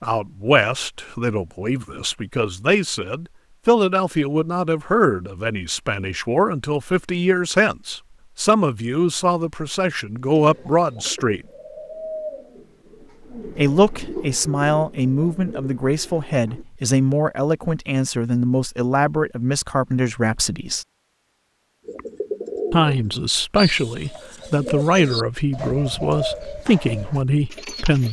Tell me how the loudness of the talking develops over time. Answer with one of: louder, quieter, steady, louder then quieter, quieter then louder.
steady.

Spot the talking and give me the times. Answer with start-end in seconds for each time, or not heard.
0.0-11.4, 13.6-20.9, 22.7-28.0.